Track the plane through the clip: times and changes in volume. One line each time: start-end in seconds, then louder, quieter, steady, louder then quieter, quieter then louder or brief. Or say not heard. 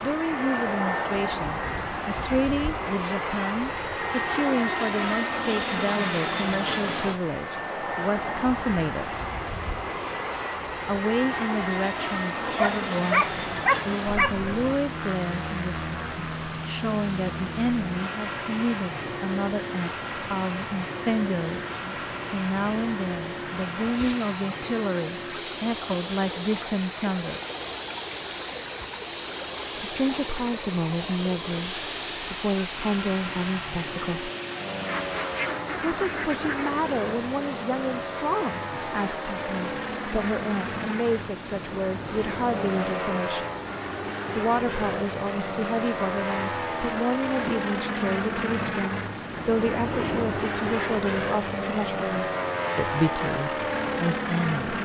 0.0-54.7 quieter then louder.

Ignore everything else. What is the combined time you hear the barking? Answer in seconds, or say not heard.
2 s.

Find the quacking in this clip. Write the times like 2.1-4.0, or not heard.
34.9-36.9.